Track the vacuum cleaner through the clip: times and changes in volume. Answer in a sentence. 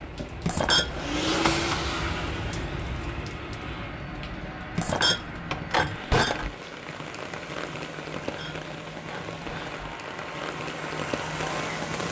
You can hear the vacuum cleaner from 0.0 to 6.2 s, getting quieter; and briefly from 9.7 to 12.0 s.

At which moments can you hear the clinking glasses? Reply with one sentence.
You can hear the clinking glasses from 0.5 to 1.0 s, from 4.8 to 6.5 s and from 8.2 to 9.8 s.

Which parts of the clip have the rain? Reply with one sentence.
You can hear the rain from 0.0 to 12.0 s.